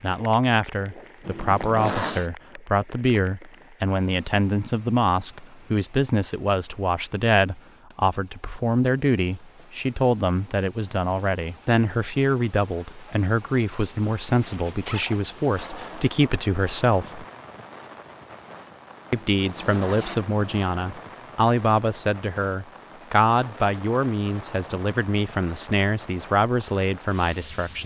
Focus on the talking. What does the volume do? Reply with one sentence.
The loudness of the talking stays about the same.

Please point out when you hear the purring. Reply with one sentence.
The purring can't be heard in this clip.